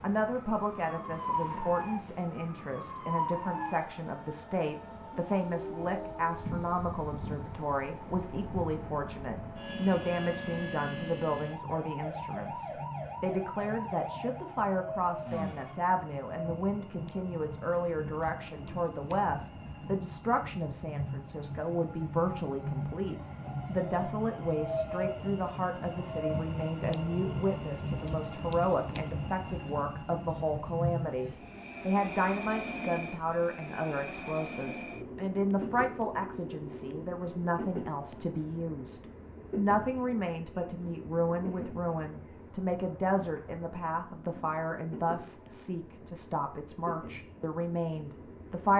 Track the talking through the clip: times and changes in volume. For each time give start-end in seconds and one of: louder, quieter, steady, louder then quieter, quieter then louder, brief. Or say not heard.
0.0-48.7 steady.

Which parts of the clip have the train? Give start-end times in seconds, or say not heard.
0.0-48.7.